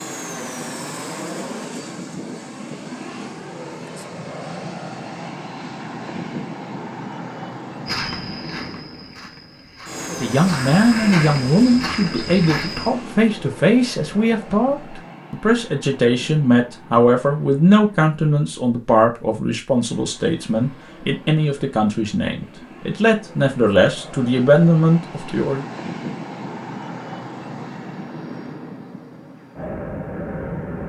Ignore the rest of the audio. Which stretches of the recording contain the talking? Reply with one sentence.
The talking can be heard from 10.1 to 25.6 s.